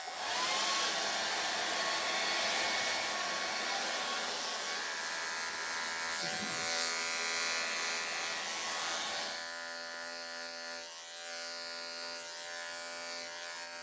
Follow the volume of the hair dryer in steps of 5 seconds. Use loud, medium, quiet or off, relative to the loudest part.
loud, medium, off.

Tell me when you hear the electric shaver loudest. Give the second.
7 s.